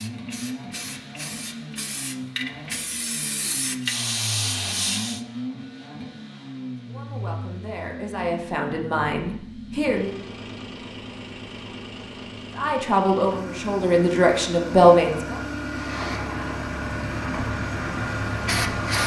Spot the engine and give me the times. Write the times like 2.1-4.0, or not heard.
0.0-19.0.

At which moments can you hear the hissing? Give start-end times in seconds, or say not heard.
0.0-5.2, 15.7-19.0.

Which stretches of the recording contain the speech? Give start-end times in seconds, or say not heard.
6.8-10.2, 12.6-15.4.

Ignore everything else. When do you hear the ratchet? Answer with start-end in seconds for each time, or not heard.
not heard.